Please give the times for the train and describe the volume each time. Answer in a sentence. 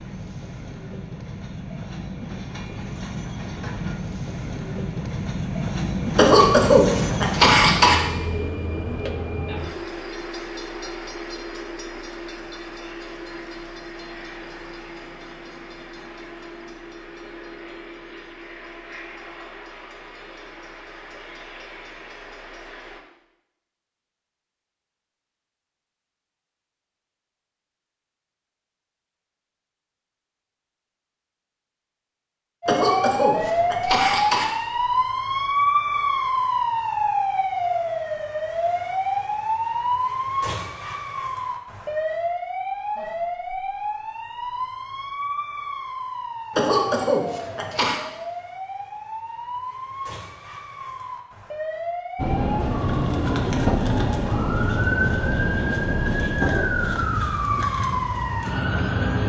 You can hear the train from 0.0 to 23.0 s, getting louder then quieter; and from 52.1 to 59.1 s, getting quieter.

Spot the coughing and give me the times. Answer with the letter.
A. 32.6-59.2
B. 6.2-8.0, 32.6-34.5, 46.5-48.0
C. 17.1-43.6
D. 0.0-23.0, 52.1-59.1
B.